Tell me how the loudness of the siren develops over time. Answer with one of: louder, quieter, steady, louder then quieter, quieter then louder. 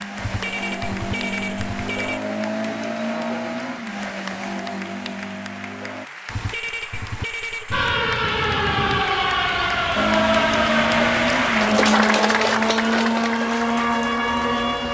quieter.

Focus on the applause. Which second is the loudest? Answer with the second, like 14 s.
12 s.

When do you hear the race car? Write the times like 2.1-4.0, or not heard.
0.0-6.1, 9.9-14.9.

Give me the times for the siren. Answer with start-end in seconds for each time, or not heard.
7.7-14.9.